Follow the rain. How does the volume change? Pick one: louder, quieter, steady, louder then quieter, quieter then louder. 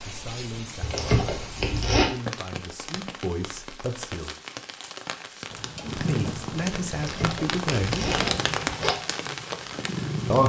louder.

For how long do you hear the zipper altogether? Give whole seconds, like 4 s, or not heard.
3 s.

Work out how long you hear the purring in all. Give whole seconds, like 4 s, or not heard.
5 s.